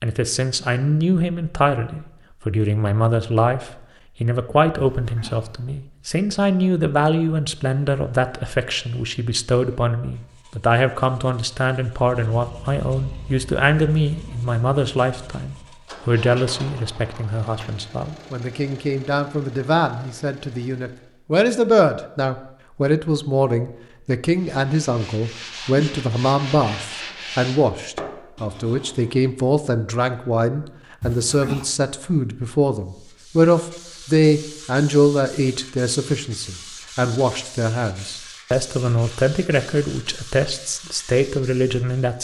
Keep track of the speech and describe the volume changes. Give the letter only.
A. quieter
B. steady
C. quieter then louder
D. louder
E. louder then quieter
B.